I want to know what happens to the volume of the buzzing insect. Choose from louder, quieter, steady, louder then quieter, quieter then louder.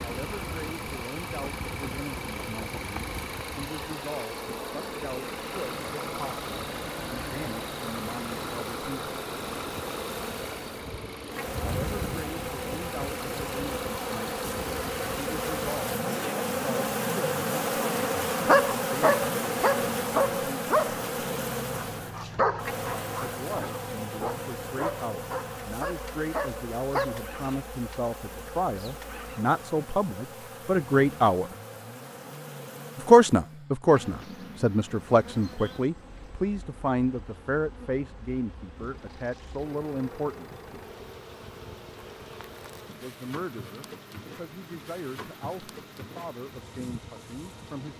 louder then quieter.